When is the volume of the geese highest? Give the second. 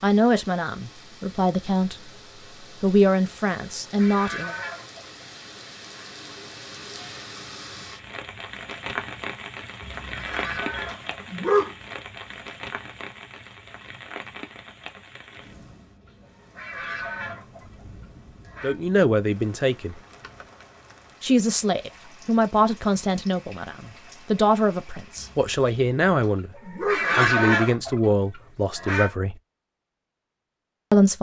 27 s.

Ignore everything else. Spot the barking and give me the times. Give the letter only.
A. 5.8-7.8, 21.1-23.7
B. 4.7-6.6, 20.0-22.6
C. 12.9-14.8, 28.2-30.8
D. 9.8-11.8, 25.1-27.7
D.